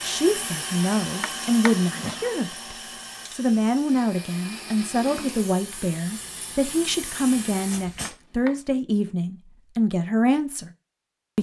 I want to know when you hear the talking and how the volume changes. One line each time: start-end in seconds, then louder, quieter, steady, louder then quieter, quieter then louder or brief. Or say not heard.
0.0-10.7 steady.